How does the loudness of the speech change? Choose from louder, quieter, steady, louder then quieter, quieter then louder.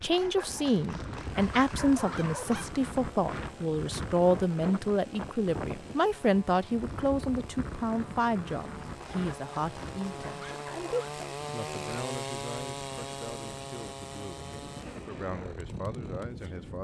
quieter.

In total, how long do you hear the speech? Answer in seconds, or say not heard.
17 s.